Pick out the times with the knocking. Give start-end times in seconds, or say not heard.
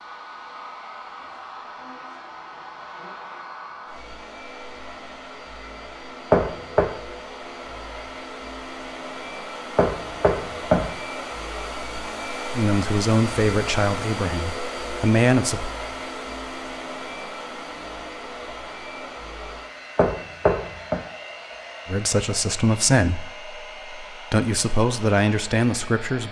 6.3-6.9, 9.8-10.9, 19.9-21.0.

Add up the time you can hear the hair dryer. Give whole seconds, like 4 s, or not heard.
26 s.